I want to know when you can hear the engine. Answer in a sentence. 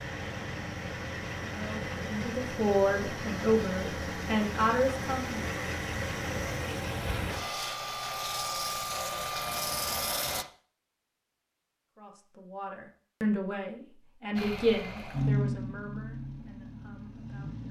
You can hear the engine from 0.0 to 10.4 s and from 14.3 to 17.6 s.